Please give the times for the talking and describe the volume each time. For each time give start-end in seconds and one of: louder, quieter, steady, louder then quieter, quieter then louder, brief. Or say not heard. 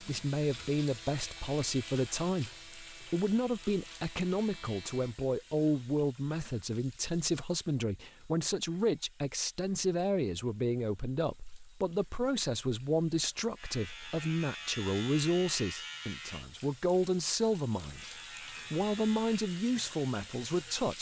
0.0-18.1 steady
18.7-20.9 brief.